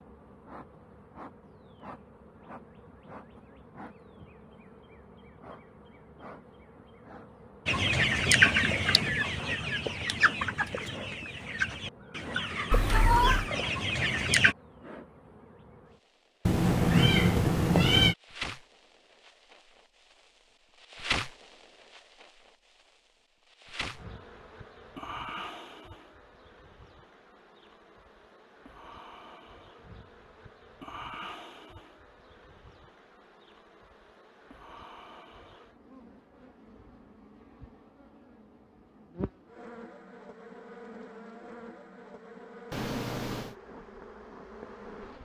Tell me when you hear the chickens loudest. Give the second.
8 s.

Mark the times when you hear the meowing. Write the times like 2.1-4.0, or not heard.
12.7-13.5, 16.4-18.1, 42.7-43.5.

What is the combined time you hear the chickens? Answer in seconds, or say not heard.
7 s.